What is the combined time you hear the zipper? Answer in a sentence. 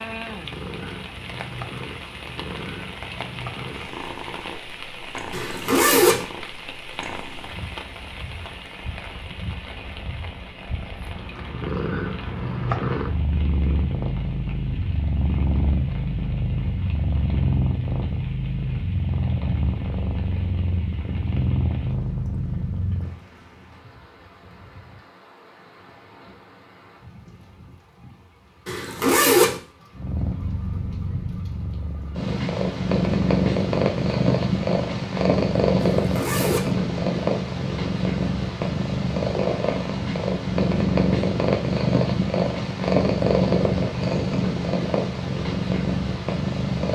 The zipper can be heard for 3 seconds in total.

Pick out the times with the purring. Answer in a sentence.
The purring can be heard from 0.0 to 23.1 s and from 29.9 to 46.8 s.